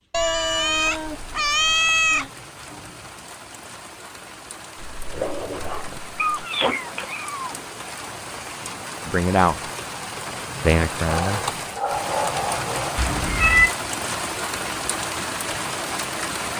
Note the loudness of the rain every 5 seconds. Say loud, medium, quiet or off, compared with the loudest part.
quiet, medium, loud, loud.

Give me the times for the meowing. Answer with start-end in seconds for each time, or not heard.
0.1-2.3, 6.2-7.5, 12.9-13.7.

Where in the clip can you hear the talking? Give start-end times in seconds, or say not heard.
9.1-9.6, 10.6-11.4.